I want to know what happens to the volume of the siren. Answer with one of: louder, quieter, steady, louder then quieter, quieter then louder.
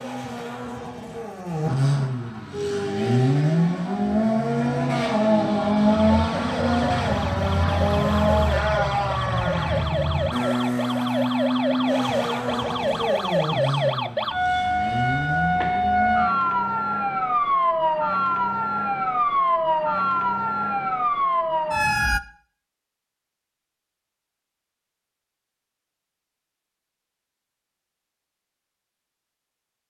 louder.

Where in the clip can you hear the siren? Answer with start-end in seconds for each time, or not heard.
2.5-22.2.